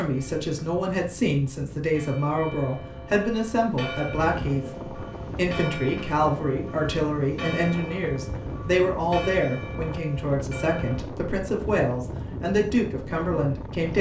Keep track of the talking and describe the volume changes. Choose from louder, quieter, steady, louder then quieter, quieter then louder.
steady.